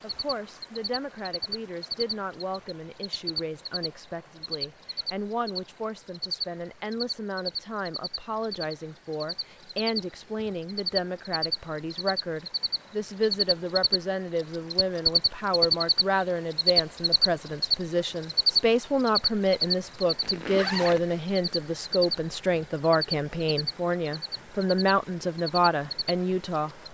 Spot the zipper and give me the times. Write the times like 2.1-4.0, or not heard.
20.2-21.2.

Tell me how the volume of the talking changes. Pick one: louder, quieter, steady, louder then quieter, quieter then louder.
louder.